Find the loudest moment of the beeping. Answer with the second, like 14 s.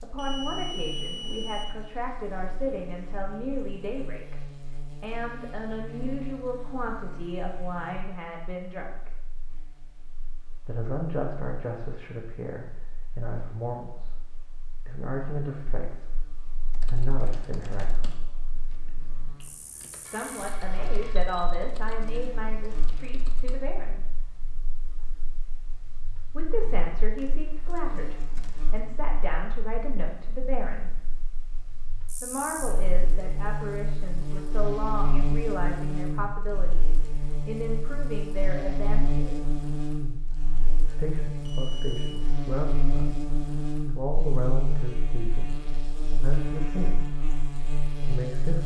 1 s.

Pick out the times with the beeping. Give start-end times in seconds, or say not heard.
0.1-1.6, 20.1-21.4, 41.4-42.1.